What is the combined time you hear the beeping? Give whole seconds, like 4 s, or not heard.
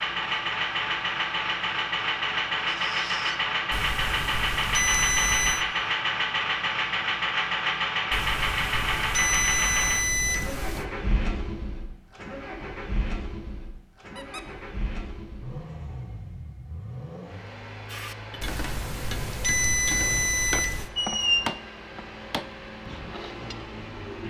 7 s.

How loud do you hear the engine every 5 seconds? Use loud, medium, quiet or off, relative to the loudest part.
loud, loud, medium, quiet, quiet.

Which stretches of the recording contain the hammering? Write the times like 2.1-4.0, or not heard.
17.9-23.6.